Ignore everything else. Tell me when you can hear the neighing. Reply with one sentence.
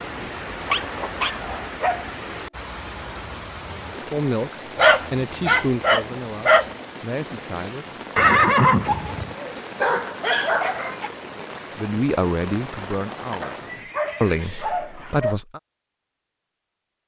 The neighing can be heard from 0.7 to 1.6 s, from 8.2 to 9.3 s and from 13.3 to 15.2 s.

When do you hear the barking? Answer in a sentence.
You can hear the barking from 0.1 to 2.0 s, from 4.8 to 6.7 s, from 8.8 to 11.1 s and from 13.4 to 15.3 s.